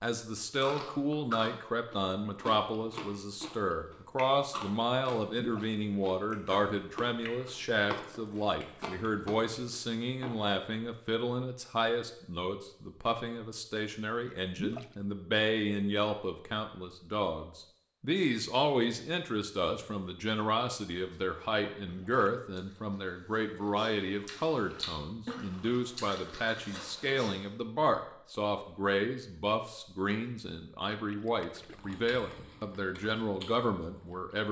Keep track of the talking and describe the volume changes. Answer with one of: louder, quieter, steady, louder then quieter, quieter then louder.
steady.